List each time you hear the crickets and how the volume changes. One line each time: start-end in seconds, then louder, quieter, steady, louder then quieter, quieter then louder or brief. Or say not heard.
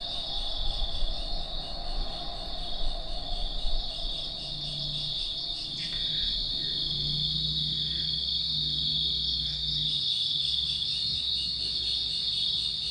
0.0-12.8 louder.